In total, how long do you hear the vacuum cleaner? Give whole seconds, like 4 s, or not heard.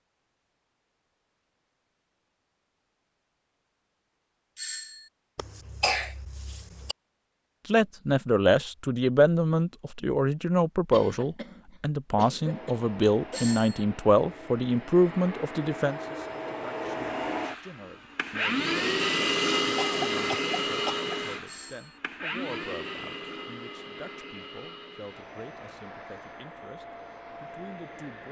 16 s.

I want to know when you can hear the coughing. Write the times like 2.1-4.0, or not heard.
5.3-7.0, 10.9-13.4, 19.8-21.1.